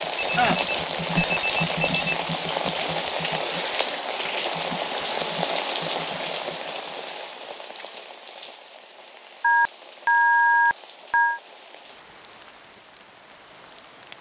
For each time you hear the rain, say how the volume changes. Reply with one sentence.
The rain can be heard from 0.0 to 14.1 s, getting quieter.